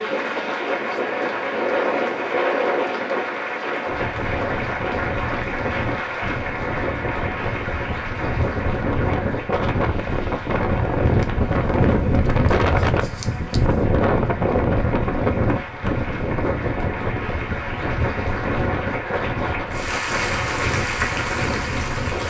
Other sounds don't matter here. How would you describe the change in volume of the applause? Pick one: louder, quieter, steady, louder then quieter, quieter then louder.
quieter then louder.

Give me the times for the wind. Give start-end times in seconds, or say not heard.
0.0-22.2.